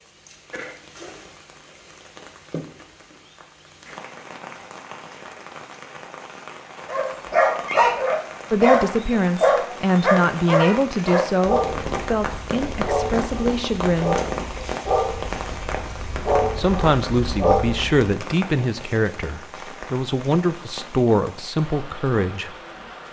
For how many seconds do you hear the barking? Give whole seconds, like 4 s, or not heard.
11 s.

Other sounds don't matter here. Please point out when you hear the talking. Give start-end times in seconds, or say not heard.
8.5-14.2, 16.6-22.6.